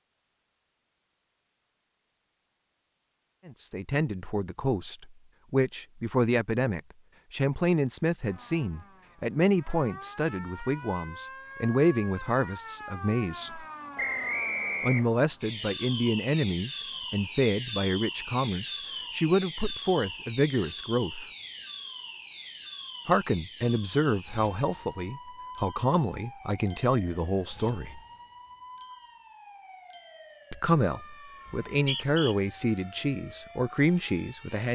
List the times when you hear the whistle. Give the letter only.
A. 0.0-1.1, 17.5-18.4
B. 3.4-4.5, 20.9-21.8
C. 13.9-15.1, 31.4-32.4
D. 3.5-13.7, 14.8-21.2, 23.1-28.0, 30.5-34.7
C.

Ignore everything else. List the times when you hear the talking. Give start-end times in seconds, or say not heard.
3.5-13.7, 14.8-21.2, 23.1-28.0, 30.5-34.7.